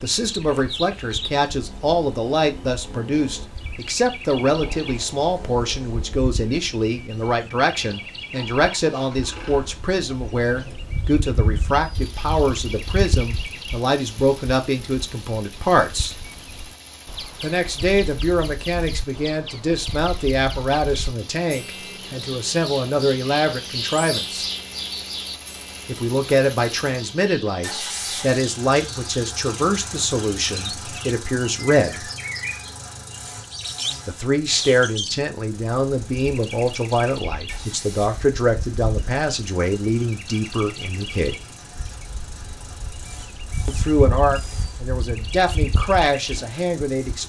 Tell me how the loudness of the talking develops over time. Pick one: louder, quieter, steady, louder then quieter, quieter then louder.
steady.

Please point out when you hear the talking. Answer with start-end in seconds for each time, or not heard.
0.0-16.1, 17.4-24.4, 25.9-32.0, 34.0-41.4, 43.6-47.2.